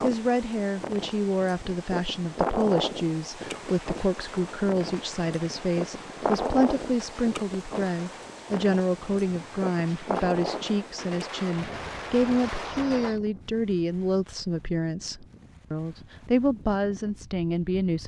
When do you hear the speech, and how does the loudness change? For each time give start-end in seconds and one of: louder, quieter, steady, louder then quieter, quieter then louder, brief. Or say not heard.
0.0-18.0 steady.